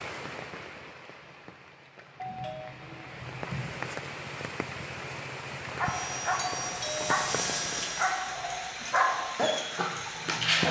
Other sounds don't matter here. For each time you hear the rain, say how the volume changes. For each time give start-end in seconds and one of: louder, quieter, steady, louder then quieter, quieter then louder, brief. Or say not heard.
0.0-10.6 louder.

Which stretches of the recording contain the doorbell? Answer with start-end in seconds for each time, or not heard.
2.1-3.7, 6.3-7.2.